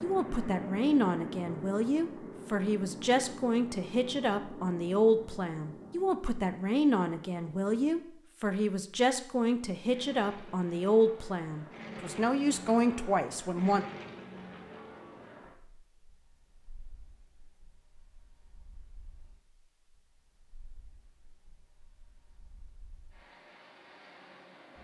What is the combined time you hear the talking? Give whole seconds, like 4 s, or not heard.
14 s.